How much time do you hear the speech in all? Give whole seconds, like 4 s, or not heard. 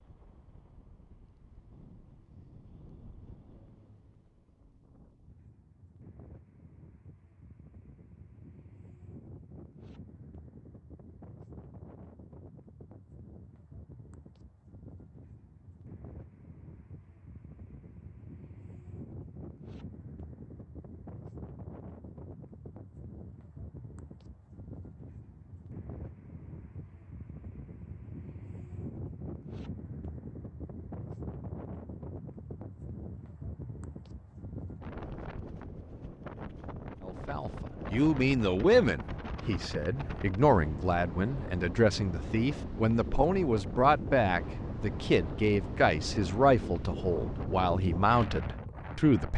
12 s.